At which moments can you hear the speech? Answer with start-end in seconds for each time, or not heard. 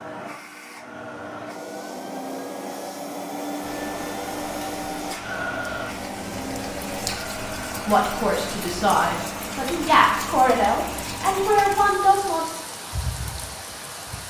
7.8-12.4.